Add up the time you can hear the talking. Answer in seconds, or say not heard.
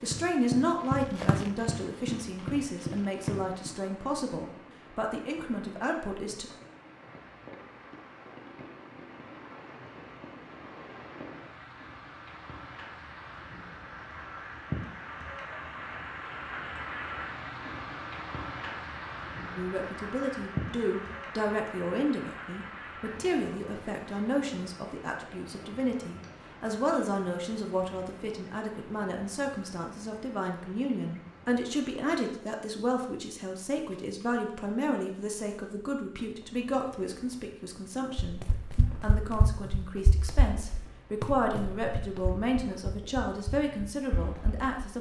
32 s.